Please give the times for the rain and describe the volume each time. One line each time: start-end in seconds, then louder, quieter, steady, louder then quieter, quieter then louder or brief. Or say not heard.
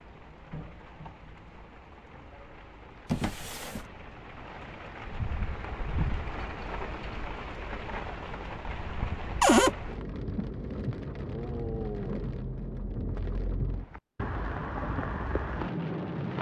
0.0-16.3 louder.